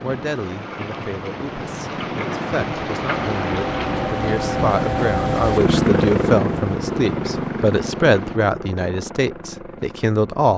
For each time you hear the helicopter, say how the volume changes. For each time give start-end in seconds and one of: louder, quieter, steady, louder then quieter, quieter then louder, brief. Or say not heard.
0.0-10.5 louder then quieter.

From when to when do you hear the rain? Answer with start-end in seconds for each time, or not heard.
0.0-8.4.